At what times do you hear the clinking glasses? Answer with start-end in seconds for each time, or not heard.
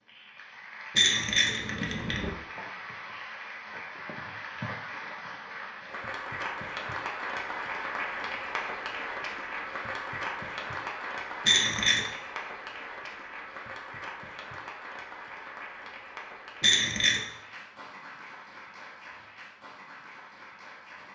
0.9-2.3, 11.4-12.1, 16.6-17.2.